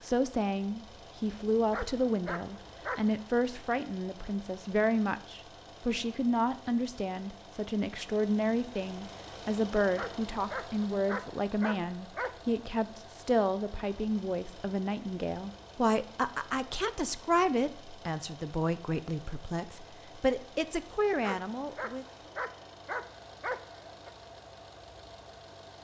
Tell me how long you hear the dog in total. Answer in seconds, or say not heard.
7 s.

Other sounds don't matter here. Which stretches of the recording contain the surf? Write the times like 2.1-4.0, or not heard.
not heard.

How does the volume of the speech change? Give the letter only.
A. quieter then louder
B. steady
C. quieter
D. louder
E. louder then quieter
B.